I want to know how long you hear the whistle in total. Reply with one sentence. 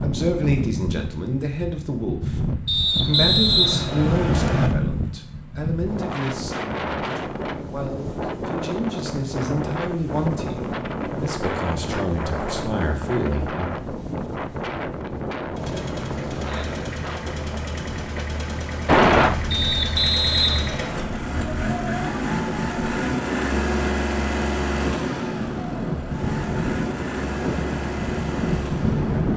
You can hear the whistle for 4 seconds altogether.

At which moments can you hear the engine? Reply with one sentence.
You can hear the engine from 15.5 to 29.3 s.